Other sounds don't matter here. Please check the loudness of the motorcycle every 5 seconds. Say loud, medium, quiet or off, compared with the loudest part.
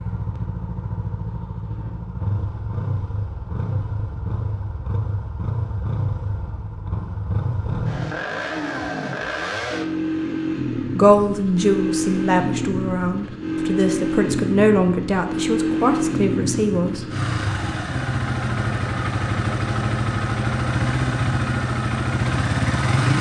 medium, medium, loud, loud, loud.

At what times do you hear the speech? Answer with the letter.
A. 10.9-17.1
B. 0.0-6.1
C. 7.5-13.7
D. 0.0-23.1
A.